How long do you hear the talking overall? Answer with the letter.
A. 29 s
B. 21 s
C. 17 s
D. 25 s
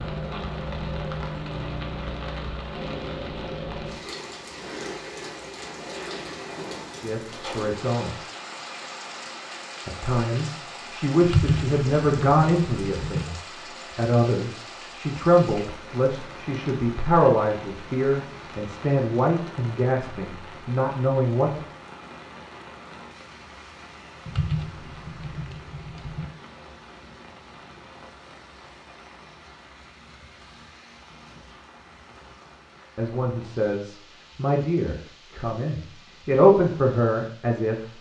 C.